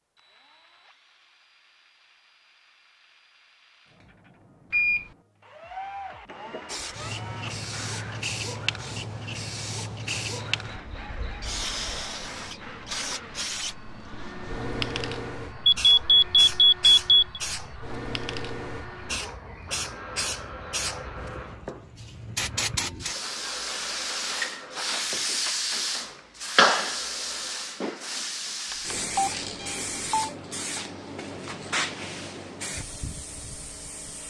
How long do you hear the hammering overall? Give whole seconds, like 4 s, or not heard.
not heard.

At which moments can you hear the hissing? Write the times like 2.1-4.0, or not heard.
6.7-34.2.